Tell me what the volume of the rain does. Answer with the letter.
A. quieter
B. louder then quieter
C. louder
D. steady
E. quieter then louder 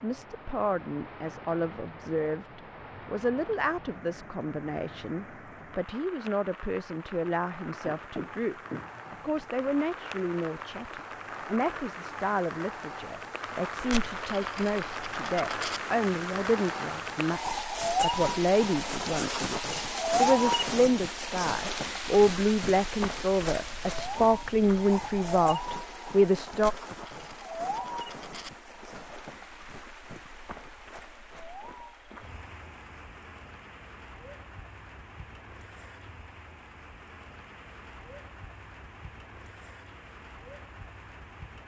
B.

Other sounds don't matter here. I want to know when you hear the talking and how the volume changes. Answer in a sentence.
The talking can be heard from 0.0 to 26.7 s, getting louder.